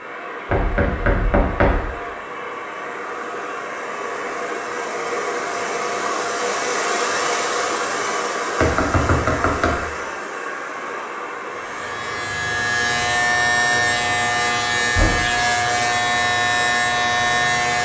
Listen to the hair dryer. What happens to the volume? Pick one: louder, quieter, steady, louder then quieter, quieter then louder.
louder then quieter.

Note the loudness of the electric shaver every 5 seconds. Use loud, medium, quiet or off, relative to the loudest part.
off, off, loud, loud.